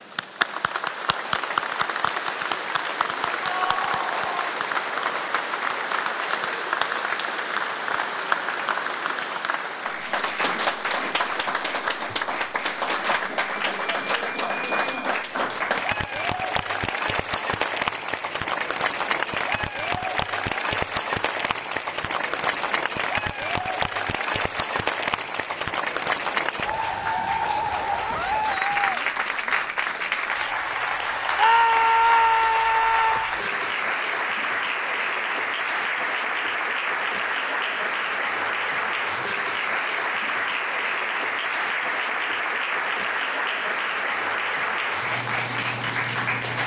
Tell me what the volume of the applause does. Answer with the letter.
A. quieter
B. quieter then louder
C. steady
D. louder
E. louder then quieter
C.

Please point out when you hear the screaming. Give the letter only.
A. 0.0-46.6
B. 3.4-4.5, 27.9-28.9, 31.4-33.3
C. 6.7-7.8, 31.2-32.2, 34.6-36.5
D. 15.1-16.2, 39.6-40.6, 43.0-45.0
B.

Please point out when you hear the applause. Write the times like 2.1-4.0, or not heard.
0.0-46.6.